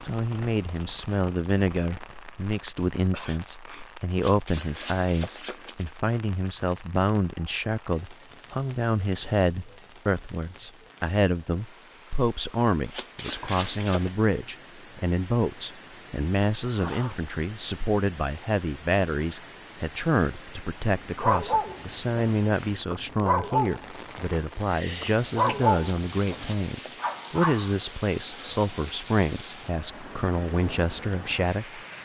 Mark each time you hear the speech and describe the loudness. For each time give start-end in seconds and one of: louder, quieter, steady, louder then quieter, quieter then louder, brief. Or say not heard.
0.0-31.9 steady.